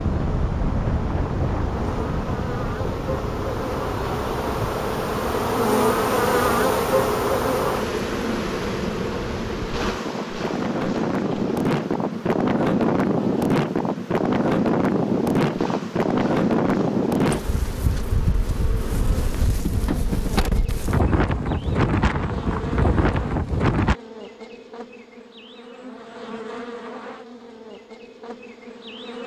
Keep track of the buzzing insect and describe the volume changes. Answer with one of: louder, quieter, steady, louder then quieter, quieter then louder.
quieter.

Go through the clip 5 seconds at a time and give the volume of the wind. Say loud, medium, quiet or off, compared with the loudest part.
medium, quiet, loud, loud, loud, off.